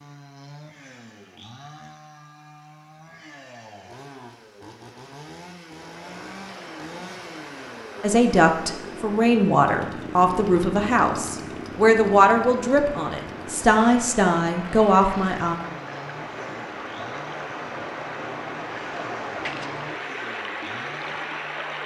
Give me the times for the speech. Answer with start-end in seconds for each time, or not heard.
8.0-15.6.